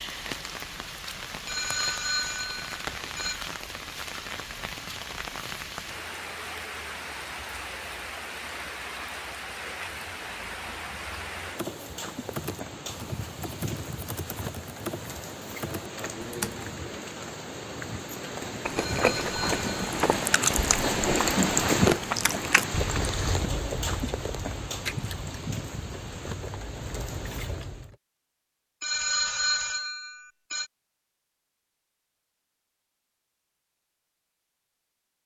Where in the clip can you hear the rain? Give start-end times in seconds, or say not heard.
0.0-27.9.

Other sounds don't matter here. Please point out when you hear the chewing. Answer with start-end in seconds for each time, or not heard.
18.6-27.9.